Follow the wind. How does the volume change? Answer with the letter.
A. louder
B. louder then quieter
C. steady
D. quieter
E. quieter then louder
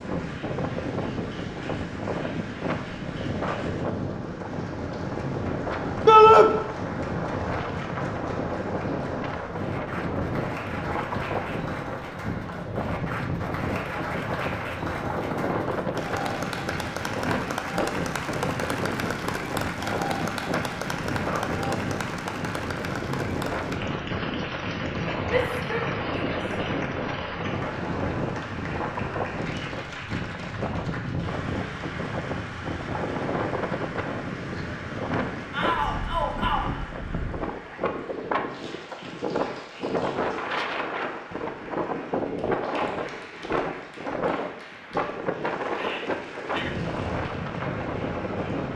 C.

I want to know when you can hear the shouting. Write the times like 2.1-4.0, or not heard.
6.0-6.5, 25.2-26.4, 35.5-36.8.